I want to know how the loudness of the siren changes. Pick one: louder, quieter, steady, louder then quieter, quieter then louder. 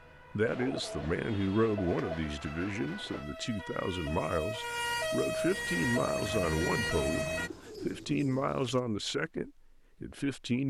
louder.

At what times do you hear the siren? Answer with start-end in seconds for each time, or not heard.
0.0-7.5.